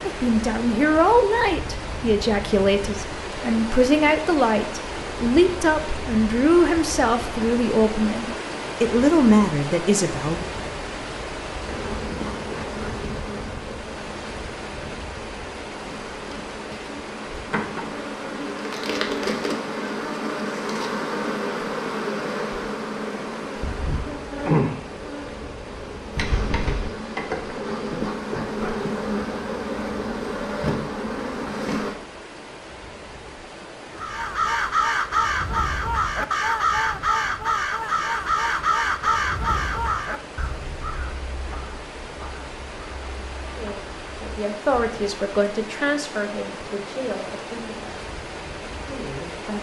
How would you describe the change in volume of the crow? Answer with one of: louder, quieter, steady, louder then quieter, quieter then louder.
quieter.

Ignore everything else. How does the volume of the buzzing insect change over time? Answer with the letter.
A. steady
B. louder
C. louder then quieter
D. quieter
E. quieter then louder
B.